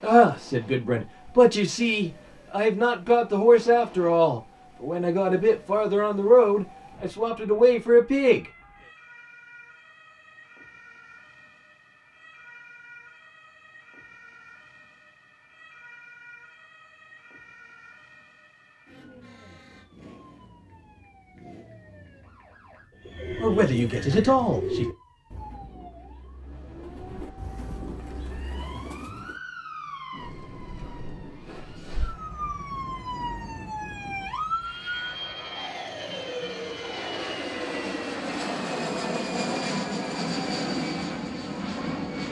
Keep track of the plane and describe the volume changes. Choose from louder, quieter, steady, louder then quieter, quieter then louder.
louder.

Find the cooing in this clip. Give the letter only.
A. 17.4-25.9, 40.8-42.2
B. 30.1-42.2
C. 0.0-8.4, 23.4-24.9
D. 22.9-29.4
D.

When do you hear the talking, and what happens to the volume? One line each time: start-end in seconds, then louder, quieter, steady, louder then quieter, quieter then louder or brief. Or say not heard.
0.0-8.4 steady
23.4-24.9 brief.